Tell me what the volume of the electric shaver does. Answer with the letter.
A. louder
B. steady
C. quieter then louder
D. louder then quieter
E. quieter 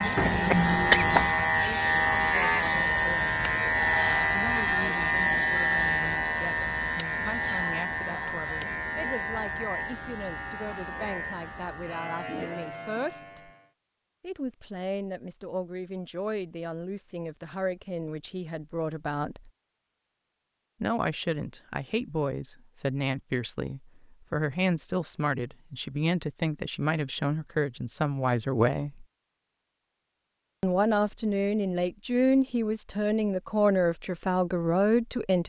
E.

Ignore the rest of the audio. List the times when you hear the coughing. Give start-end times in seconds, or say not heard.
0.1-1.4.